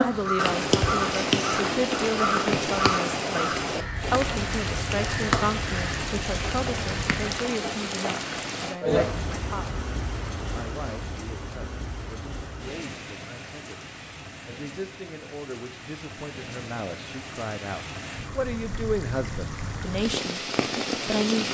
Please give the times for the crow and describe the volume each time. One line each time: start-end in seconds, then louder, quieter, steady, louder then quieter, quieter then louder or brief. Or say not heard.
0.0-7.3 quieter.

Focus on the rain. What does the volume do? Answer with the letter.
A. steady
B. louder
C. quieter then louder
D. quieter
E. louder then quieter
C.